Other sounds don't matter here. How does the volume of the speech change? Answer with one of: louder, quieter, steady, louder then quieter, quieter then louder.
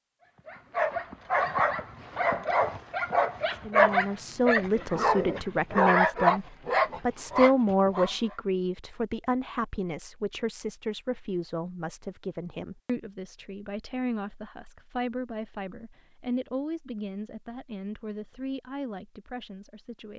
quieter.